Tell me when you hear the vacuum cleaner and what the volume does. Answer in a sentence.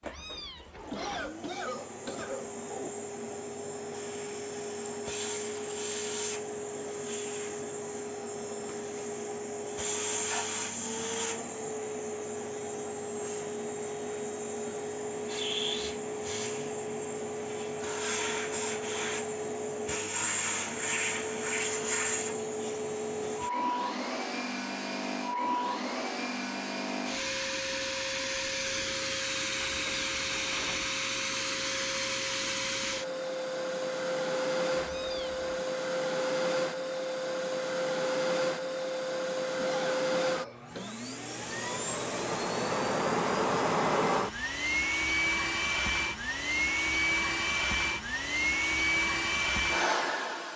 The vacuum cleaner can be heard from 0.0 to 50.5 s, getting louder.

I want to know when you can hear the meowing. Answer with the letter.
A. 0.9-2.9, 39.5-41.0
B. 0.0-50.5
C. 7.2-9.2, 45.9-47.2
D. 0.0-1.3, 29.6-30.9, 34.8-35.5
D.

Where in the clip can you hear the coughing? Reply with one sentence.
The coughing can be heard from 0.9 to 2.9 s and from 39.5 to 41.0 s.